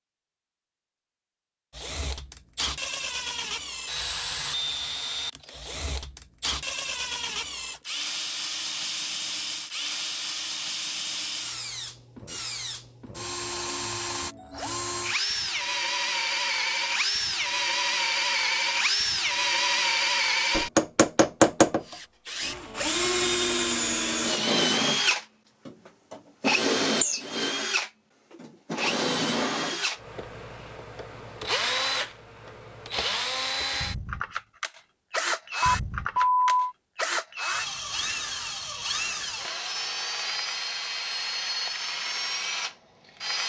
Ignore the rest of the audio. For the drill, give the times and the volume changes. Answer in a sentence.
The drill can be heard from 1.7 to 43.4 s, getting louder then quieter.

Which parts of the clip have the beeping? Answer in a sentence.
The beeping can be heard from 35.6 to 36.8 s.